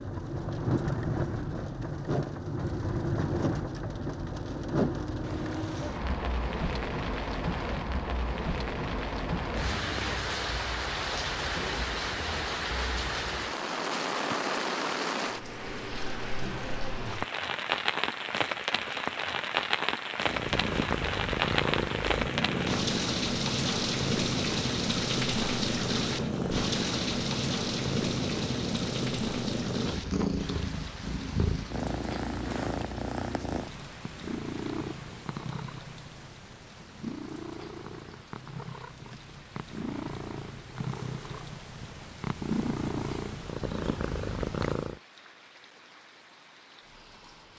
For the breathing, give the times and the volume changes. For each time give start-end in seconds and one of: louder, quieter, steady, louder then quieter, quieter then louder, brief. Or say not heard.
not heard.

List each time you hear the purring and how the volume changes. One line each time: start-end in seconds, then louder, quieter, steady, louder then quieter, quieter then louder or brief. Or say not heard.
20.2-45.0 quieter then louder.